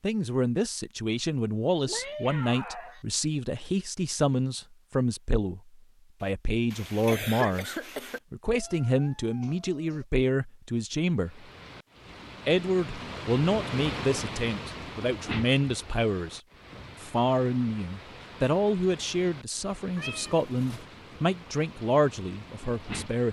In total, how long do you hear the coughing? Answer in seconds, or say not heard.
2 s.